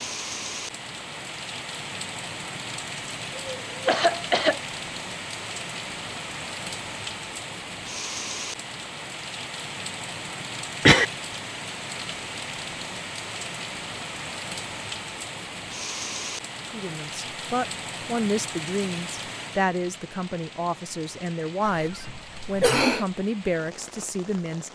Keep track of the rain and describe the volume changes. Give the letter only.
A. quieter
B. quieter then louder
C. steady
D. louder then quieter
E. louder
A.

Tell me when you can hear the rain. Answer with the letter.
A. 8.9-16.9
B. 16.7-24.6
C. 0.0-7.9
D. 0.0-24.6
D.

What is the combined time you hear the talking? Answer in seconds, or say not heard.
8 s.